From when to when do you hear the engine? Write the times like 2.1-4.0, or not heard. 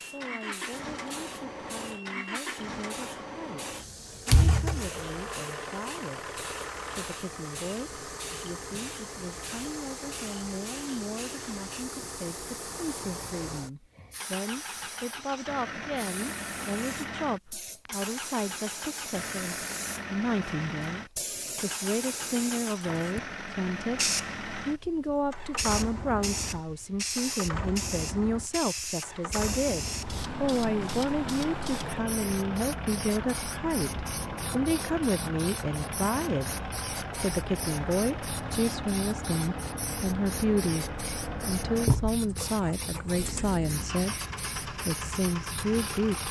0.0-46.2.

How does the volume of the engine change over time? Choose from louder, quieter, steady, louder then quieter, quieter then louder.
steady.